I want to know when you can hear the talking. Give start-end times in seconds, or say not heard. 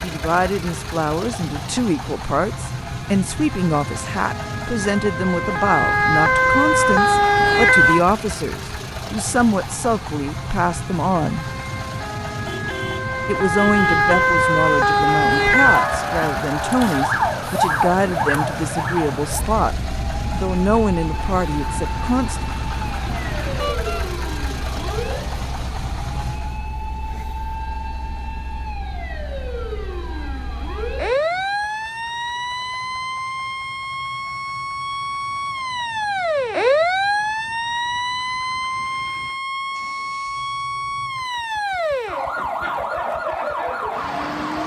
0.0-11.5, 13.2-19.8, 20.4-22.4.